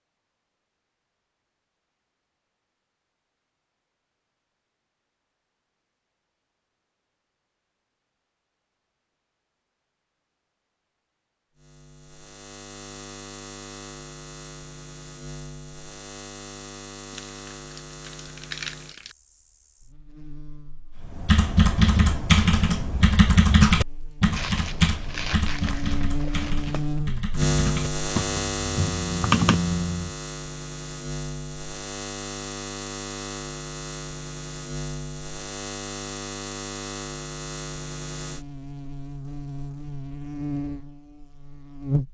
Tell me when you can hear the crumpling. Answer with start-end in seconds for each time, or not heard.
17.1-19.1, 24.3-26.9.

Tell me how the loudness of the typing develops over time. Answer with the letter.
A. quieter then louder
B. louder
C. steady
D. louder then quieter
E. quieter
A.